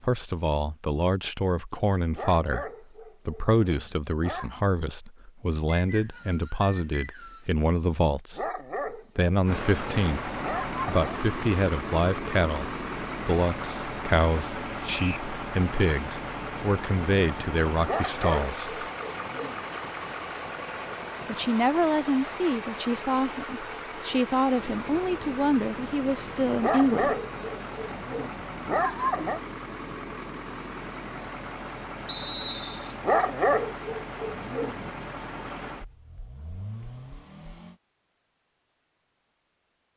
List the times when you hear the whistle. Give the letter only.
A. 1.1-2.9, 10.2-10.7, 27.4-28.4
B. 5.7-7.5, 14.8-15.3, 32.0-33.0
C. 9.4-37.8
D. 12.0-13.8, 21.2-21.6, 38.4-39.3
B.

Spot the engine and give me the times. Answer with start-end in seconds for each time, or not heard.
9.4-37.8.